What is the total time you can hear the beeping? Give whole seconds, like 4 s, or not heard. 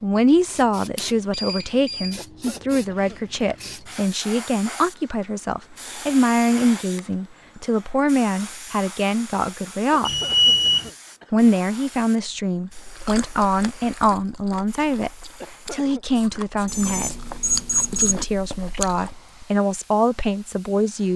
4 s.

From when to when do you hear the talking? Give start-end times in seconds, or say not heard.
0.0-10.2, 11.3-17.1, 17.9-21.1.